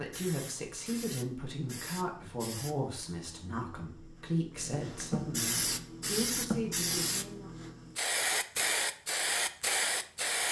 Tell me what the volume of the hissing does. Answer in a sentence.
The volume of the hissing goes up.